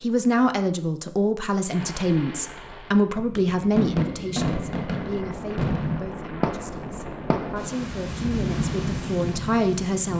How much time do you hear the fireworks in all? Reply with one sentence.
The fireworks can be heard for 6 seconds in total.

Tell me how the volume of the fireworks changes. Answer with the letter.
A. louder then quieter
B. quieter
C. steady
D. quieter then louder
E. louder
E.